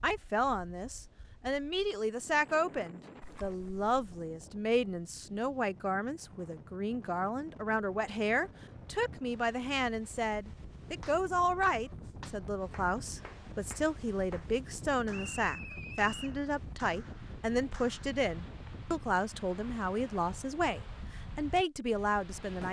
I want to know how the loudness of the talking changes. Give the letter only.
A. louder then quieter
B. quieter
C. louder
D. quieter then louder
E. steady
E.